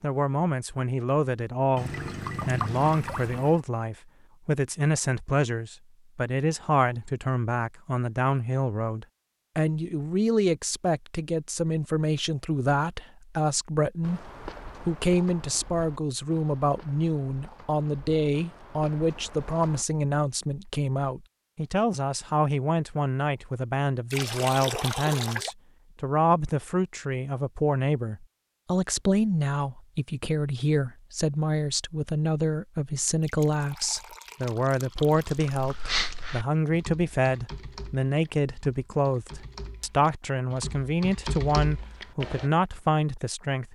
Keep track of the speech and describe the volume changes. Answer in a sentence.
The loudness of the speech stays about the same.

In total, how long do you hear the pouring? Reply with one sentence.
The pouring can be heard for 6 seconds in total.